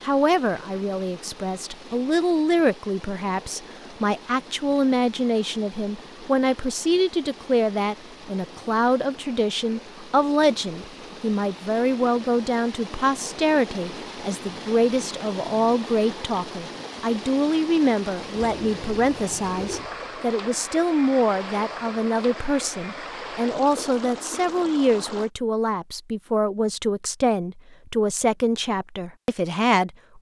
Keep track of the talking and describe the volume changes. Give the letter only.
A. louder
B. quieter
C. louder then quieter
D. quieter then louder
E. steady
E.